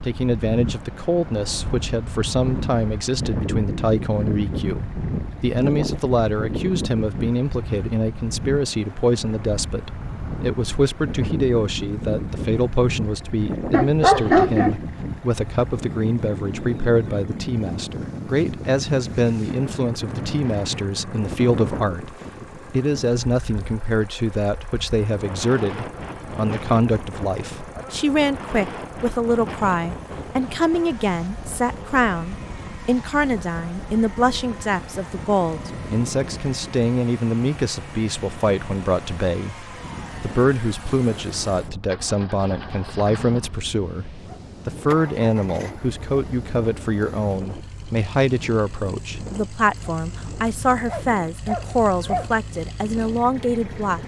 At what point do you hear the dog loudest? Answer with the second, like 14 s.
14 s.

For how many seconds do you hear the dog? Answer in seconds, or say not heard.
3 s.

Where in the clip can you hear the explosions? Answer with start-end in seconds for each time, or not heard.
not heard.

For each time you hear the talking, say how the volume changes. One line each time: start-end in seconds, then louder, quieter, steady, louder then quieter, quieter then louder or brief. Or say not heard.
0.0-54.0 steady.